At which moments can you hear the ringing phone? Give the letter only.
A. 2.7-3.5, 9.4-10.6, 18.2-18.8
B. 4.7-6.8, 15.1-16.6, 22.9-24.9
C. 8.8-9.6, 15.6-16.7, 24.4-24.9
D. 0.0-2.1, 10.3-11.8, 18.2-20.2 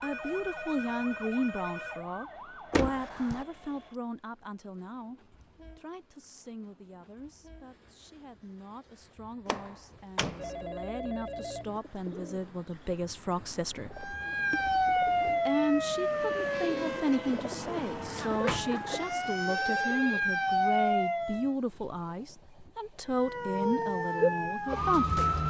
D.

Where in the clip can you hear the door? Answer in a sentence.
You can hear the door from 2.7 to 3.5 s, from 9.4 to 10.6 s and from 18.2 to 18.8 s.